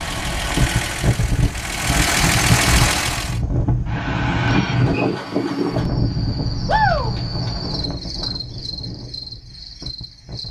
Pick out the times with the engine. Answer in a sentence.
You can hear the engine from 0.0 to 3.4 s.